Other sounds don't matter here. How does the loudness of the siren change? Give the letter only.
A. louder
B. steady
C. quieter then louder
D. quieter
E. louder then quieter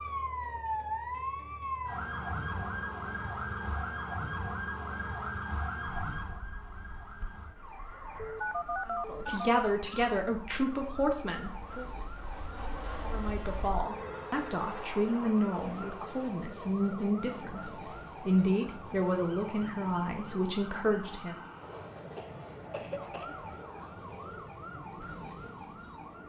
D.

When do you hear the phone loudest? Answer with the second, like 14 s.
9 s.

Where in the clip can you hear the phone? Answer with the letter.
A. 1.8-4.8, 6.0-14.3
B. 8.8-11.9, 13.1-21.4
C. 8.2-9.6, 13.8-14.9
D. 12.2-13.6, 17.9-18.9
C.